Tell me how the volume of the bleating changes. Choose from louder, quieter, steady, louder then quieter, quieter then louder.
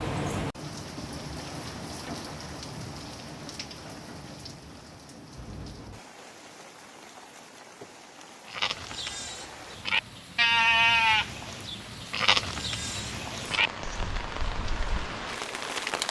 louder then quieter.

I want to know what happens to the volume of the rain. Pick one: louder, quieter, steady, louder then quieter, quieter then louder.
quieter then louder.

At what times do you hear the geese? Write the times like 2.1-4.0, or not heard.
not heard.